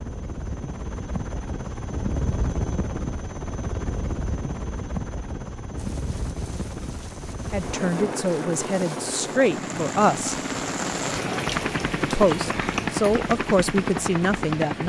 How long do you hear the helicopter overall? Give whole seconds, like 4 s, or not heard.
15 s.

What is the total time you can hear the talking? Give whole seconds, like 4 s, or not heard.
6 s.